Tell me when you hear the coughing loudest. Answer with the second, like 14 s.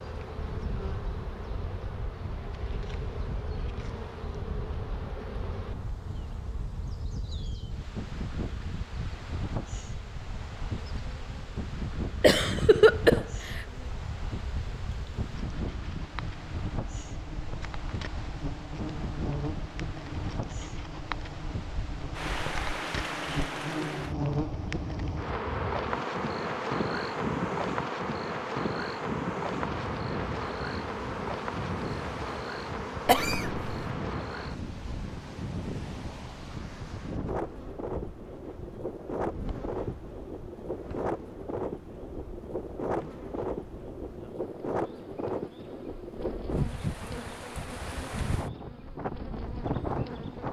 13 s.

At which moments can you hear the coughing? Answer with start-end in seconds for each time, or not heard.
12.2-13.7, 33.0-33.6.